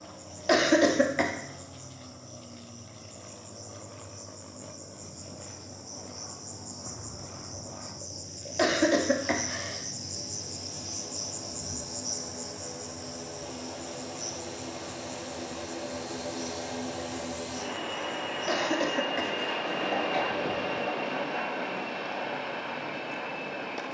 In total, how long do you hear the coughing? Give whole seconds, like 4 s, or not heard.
4 s.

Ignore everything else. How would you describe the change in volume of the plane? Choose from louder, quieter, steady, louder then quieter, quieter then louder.
louder.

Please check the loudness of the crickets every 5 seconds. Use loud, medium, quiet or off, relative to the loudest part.
medium, loud, loud, medium, off.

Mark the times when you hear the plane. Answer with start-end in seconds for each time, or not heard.
0.0-23.8.